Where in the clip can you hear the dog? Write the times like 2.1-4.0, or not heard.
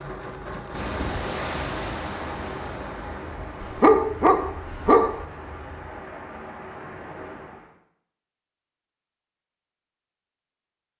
3.6-5.2.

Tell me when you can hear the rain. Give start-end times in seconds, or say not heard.
0.0-7.8.